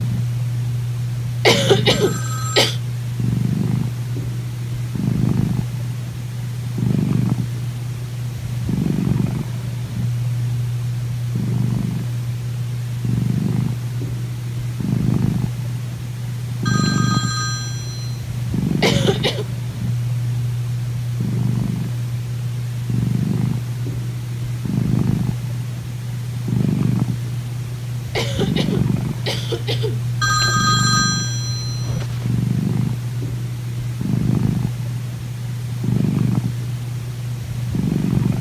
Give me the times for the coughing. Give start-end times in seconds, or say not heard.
1.4-2.8, 18.8-19.4, 28.1-30.1.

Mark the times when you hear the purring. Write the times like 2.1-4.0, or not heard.
0.0-38.3.